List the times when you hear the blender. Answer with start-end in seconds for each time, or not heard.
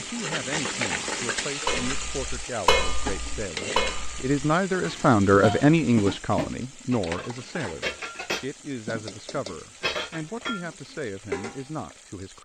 not heard.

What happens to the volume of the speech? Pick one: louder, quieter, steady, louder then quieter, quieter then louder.
louder then quieter.